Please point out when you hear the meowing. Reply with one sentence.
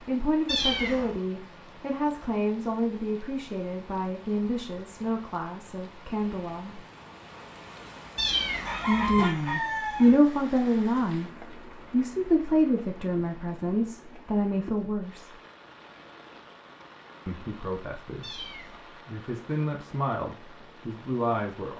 You can hear the meowing from 0.5 to 1.1 s, from 8.2 to 9.2 s and from 18.2 to 18.9 s.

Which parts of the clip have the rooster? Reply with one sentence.
The rooster can be heard from 8.7 to 10.2 s.